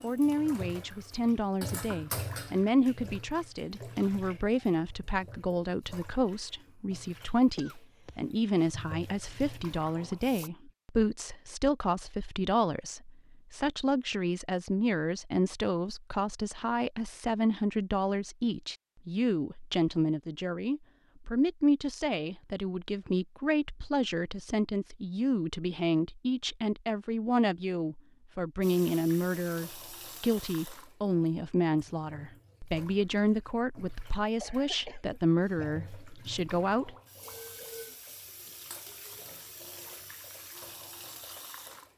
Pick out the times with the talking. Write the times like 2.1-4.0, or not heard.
0.0-37.0.